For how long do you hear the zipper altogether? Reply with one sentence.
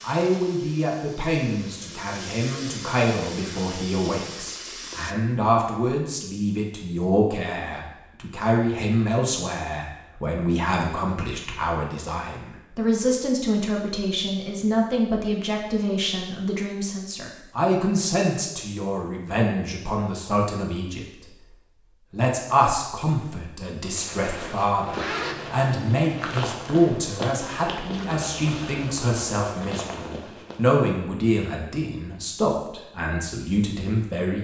You can hear the zipper for 2 seconds altogether.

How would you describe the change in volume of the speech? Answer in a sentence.
The loudness of the speech stays about the same.